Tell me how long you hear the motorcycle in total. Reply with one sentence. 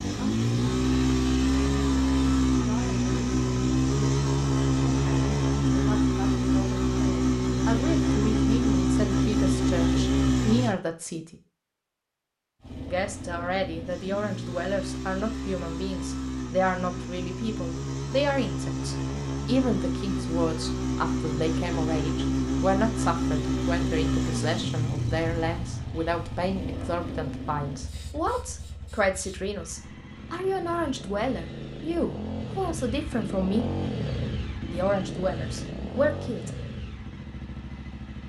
The motorcycle can be heard for 36 seconds in total.